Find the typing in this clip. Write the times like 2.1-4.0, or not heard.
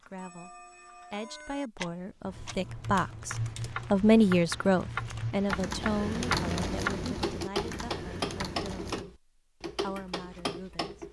2.2-9.1.